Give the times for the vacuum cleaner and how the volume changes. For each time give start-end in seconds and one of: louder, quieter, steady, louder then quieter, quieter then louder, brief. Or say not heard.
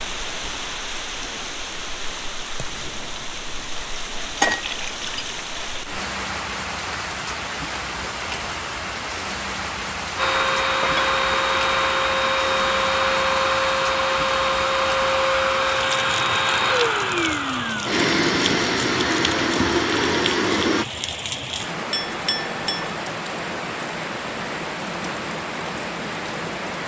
10.2-20.9 steady.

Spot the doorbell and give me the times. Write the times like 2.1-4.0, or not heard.
not heard.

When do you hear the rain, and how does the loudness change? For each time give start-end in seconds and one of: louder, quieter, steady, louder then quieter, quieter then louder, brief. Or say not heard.
0.0-26.8 steady.